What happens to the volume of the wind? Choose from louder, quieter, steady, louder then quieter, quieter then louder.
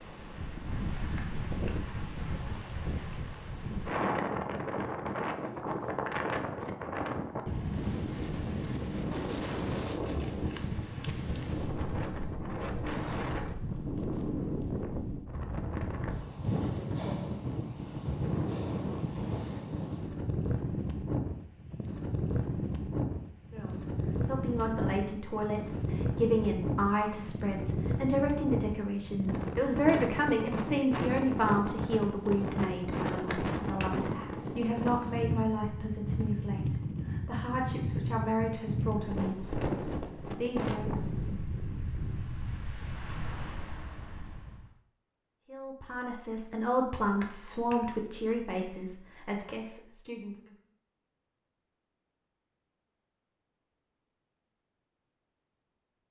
steady.